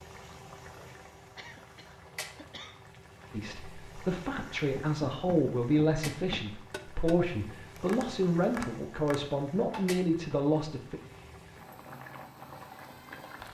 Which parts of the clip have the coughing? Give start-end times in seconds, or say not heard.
1.4-2.8.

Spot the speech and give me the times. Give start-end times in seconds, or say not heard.
3.3-11.0.